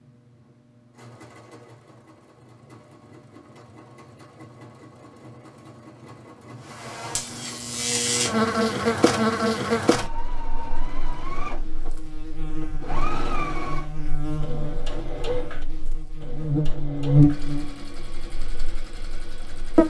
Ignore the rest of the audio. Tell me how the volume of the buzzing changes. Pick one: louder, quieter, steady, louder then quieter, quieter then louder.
quieter then louder.